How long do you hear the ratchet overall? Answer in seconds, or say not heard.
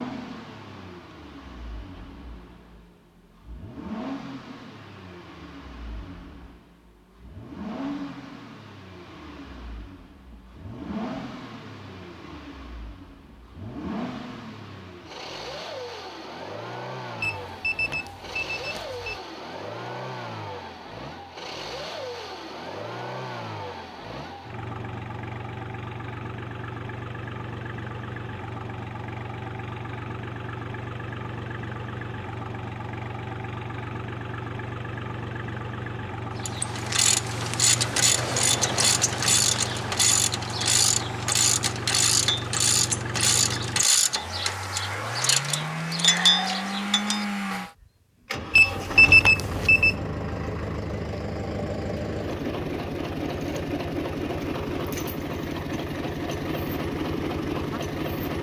11 s.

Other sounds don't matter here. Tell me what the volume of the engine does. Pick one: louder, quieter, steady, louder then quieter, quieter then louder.
louder.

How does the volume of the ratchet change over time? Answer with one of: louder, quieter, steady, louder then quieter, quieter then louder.
steady.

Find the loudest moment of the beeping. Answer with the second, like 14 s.
49 s.